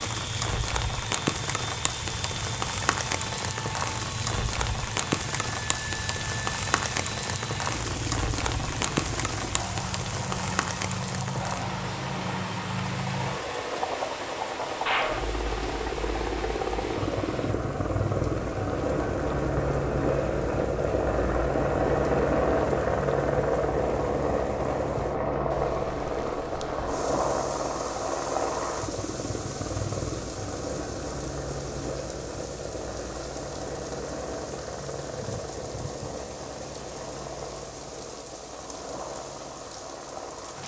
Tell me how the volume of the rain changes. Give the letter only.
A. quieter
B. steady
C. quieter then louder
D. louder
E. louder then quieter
A.